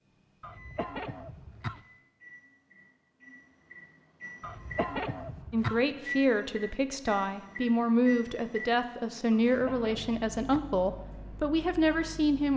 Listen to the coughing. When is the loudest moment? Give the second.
5 s.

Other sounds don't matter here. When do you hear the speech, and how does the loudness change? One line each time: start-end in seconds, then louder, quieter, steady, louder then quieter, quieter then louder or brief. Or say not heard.
5.5-12.5 steady.